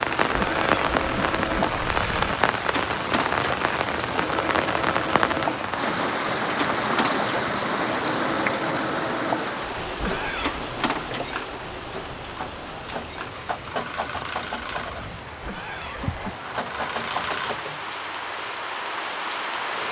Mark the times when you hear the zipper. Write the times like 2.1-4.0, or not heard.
not heard.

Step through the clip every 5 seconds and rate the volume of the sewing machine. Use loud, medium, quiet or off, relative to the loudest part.
loud, loud, loud, medium.